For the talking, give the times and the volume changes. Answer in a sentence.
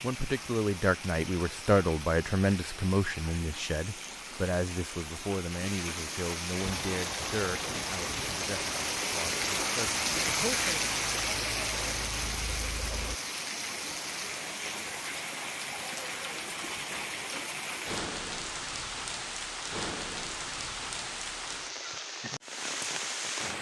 You can hear the talking from 0.0 to 10.9 s, getting quieter.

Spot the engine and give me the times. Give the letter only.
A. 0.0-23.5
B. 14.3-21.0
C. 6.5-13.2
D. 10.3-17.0
C.